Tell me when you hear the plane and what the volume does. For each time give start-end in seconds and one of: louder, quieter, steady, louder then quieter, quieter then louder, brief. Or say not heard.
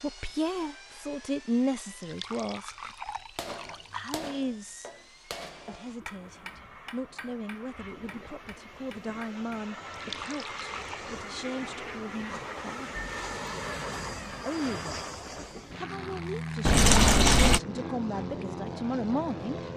0.0-19.7 louder.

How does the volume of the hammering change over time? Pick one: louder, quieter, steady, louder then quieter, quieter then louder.
quieter.